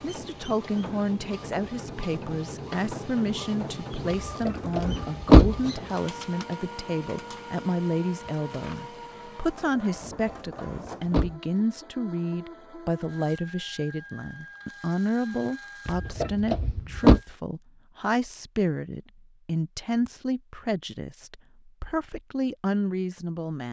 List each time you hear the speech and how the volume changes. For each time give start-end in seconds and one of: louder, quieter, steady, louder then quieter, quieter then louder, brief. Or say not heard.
0.0-23.6 steady.